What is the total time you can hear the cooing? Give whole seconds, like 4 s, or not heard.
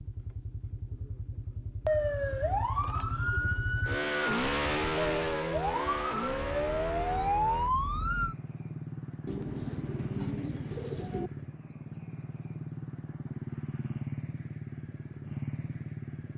2 s.